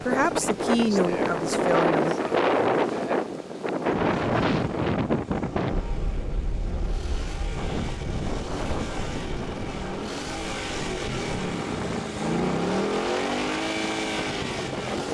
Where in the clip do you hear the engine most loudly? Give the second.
13 s.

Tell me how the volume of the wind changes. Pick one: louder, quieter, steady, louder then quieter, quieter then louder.
quieter.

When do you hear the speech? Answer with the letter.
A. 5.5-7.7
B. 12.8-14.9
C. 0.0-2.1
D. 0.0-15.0
C.